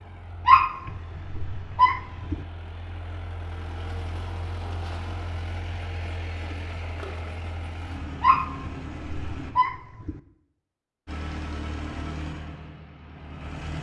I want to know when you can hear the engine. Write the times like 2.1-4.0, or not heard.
0.0-9.6, 11.1-13.7.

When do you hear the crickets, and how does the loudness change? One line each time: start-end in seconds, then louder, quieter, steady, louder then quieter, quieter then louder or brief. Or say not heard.
not heard.